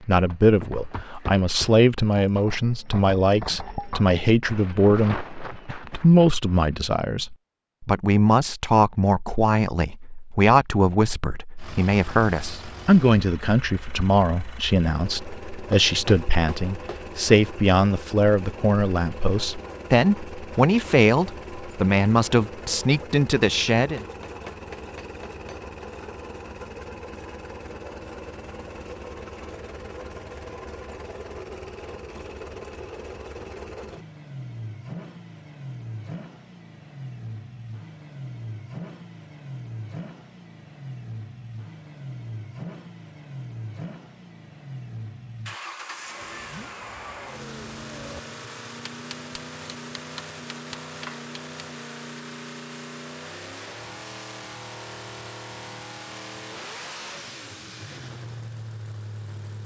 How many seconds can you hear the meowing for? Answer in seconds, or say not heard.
2 s.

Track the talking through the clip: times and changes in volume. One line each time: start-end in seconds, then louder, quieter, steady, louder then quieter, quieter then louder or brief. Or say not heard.
0.1-24.1 steady.